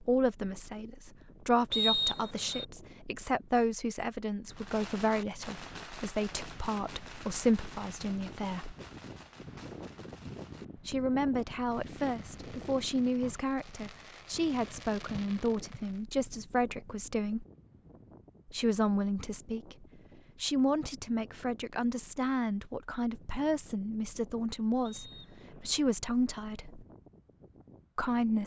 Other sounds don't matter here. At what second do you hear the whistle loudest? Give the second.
2 s.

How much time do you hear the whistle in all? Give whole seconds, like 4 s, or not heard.
2 s.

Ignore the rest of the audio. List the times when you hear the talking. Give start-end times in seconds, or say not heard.
0.0-8.8, 10.8-17.4, 18.5-26.9, 27.9-28.4.